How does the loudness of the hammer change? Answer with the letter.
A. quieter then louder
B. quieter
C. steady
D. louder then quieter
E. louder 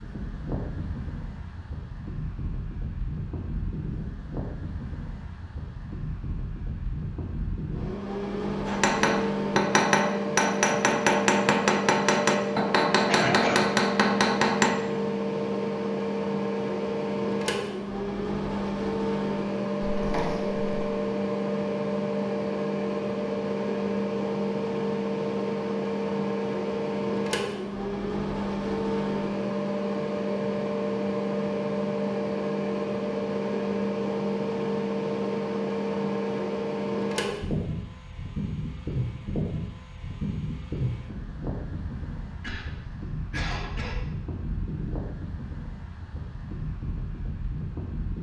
C.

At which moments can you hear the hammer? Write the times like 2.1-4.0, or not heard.
8.7-14.8.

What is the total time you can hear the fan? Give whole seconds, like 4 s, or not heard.
48 s.